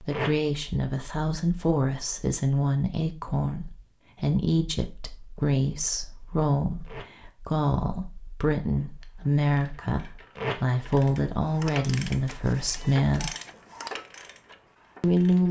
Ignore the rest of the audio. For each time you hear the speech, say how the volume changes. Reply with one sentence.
You can hear the speech from 0.0 to 13.3 s, at a steady volume; and briefly from 15.0 to 15.4 s.